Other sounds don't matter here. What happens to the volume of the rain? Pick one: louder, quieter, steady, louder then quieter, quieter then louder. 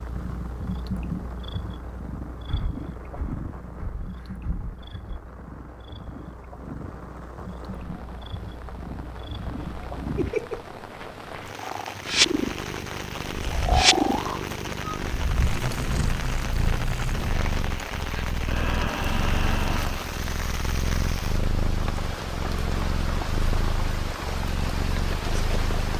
louder.